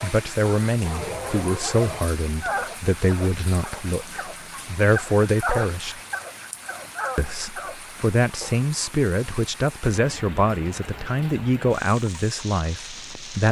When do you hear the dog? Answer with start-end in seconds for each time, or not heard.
0.0-8.7.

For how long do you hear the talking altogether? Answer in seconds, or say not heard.
12 s.